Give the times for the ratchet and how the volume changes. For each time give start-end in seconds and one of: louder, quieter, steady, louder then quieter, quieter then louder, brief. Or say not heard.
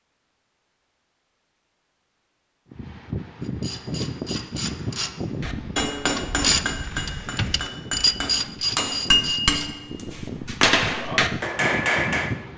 3.4-9.7 louder.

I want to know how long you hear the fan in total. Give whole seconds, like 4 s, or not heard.
10 s.